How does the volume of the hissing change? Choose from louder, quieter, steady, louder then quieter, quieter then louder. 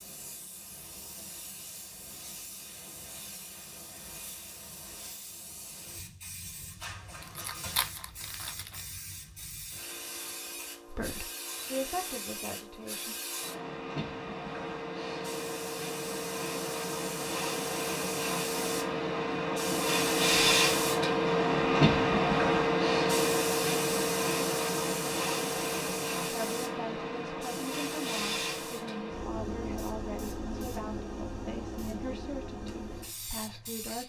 louder then quieter.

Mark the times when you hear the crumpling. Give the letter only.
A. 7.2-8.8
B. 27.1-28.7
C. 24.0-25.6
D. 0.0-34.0
A.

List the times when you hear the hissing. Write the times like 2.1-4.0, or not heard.
0.0-34.0.